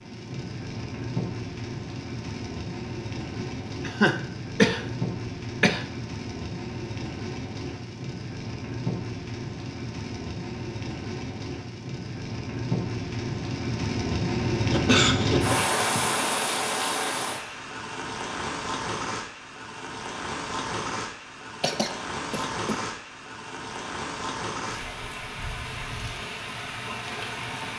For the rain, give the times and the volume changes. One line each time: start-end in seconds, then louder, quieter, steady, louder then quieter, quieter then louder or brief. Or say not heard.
0.0-27.7 louder then quieter.